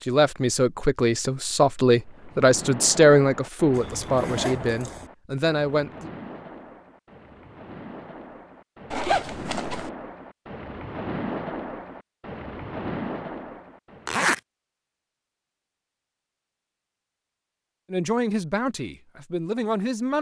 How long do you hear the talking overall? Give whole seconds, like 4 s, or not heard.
8 s.